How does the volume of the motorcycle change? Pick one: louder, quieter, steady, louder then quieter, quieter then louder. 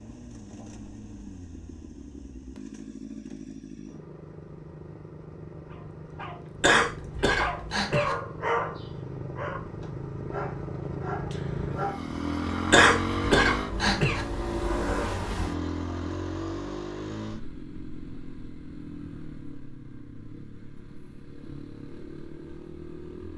louder then quieter.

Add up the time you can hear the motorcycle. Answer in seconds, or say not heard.
23 s.